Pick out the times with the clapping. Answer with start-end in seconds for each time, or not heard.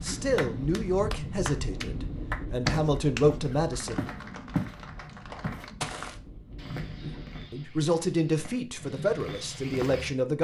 0.1-6.0.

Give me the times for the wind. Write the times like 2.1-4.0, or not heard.
0.0-7.5.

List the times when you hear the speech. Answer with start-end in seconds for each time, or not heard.
0.0-4.0, 7.0-10.3.